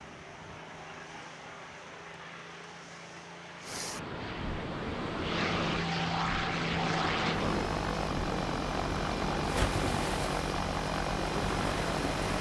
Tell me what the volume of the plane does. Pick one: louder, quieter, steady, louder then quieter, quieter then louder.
louder.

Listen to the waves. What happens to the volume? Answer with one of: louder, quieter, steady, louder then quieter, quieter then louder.
louder.